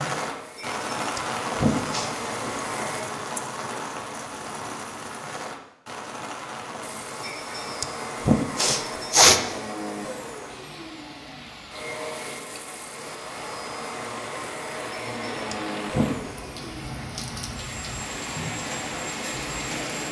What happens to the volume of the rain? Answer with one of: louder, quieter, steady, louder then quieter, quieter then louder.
quieter then louder.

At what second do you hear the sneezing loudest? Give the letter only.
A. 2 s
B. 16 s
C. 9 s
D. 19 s
C.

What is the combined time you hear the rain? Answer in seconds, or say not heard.
20 s.